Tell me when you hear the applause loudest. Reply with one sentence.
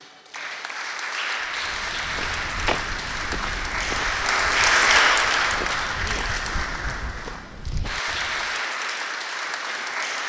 The loudest moment of the applause is at 5 seconds.